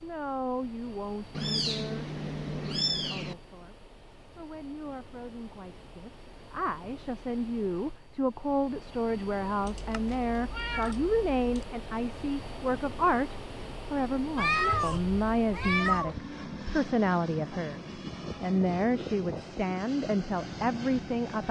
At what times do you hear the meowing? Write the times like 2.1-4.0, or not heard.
1.4-3.4, 9.6-11.7, 14.3-16.2.